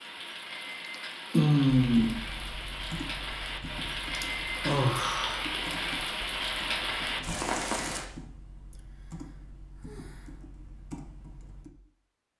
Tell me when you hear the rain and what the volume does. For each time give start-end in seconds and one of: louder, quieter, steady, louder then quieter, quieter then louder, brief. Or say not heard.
0.0-8.1 louder.